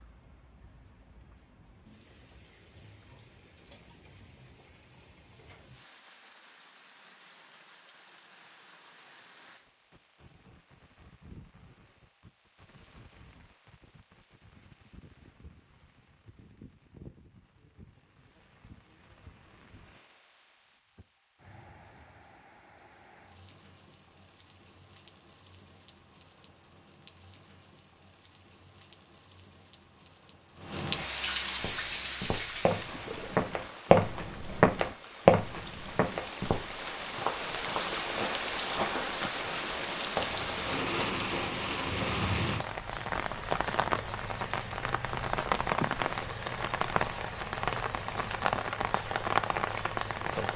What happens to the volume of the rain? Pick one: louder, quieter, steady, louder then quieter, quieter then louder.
louder.